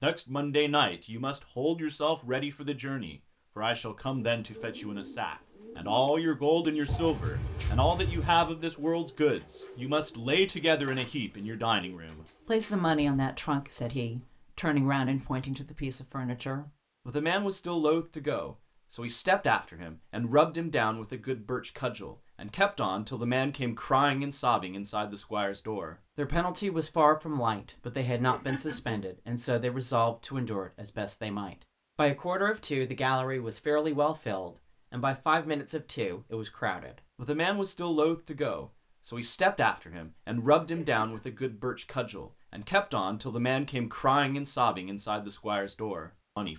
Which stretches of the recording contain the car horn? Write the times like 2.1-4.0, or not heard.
6.8-8.5, 28.1-29.1, 40.5-41.2.